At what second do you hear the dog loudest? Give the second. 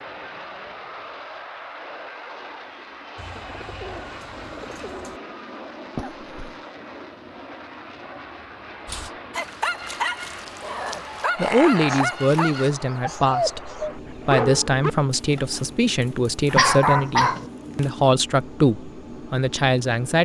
17 s.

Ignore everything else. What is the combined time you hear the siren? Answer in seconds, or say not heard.
not heard.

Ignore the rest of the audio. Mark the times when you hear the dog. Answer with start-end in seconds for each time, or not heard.
8.8-17.9.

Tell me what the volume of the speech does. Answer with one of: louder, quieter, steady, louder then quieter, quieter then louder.
steady.